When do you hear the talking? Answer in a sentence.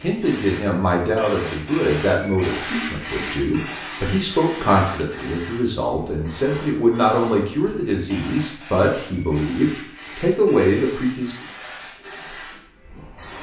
You can hear the talking from 0.0 to 11.3 s.